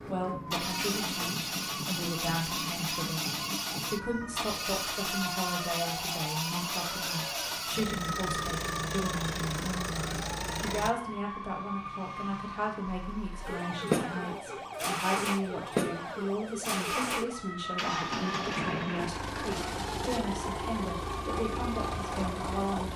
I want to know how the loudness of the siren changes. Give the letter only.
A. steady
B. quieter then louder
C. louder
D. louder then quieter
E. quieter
A.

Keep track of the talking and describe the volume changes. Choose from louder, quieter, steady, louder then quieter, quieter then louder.
steady.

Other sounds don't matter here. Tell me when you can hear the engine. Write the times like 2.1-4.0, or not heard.
0.0-10.9, 12.9-22.9.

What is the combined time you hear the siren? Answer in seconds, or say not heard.
23 s.